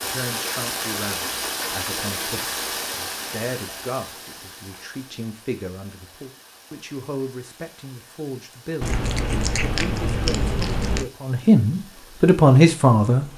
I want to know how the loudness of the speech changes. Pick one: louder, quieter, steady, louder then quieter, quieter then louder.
louder.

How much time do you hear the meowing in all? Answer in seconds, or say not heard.
2 s.